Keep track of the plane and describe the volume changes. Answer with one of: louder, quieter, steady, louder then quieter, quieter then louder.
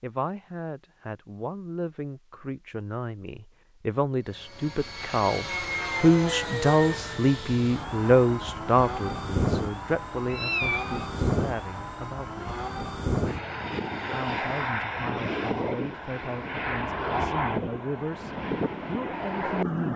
steady.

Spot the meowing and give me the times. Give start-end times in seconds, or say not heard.
10.3-11.1.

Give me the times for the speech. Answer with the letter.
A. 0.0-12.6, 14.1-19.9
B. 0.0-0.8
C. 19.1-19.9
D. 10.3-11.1
A.